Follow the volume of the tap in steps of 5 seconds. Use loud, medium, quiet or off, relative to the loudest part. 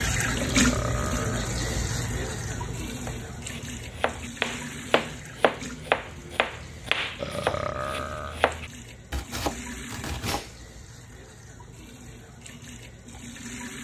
loud, quiet, quiet.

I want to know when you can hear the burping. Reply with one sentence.
You can hear the burping from 0.3 to 1.5 s and from 7.2 to 8.4 s.